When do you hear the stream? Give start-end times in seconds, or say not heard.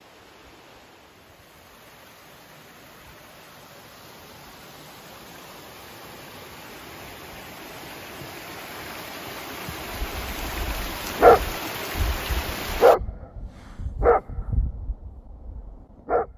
0.0-12.9.